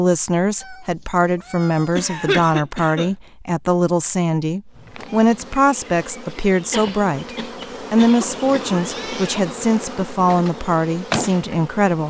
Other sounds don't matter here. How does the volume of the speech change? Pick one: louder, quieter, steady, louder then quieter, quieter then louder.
steady.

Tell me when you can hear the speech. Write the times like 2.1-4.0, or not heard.
0.0-12.0.